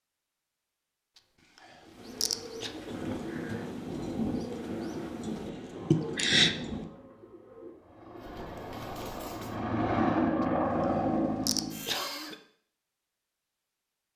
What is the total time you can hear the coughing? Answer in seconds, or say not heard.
2 s.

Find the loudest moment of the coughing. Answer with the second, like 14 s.
6 s.